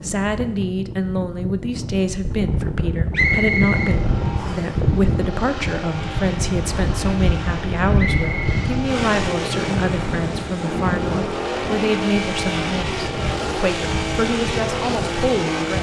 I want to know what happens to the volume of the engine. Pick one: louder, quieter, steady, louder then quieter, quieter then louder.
louder.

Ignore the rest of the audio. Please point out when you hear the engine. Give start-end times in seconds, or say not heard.
3.1-15.7.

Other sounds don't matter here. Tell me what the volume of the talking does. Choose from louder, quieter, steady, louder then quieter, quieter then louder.
steady.